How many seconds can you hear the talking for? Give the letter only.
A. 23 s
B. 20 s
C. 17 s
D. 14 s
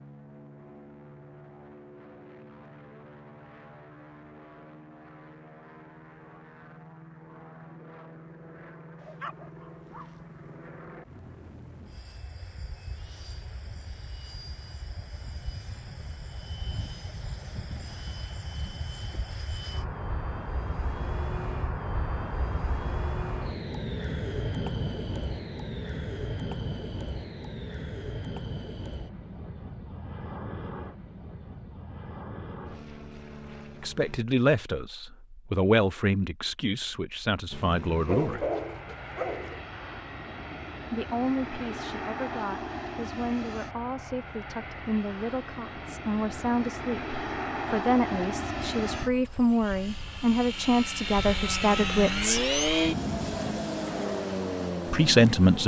C.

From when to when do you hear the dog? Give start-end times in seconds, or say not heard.
9.0-10.2, 38.0-39.6.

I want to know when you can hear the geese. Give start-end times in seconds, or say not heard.
not heard.